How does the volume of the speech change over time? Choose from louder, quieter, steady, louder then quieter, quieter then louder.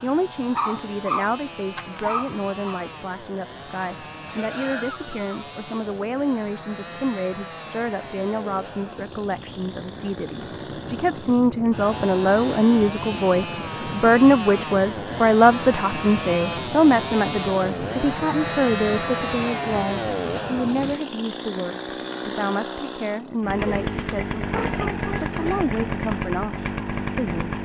louder then quieter.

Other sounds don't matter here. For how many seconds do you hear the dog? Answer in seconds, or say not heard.
4 s.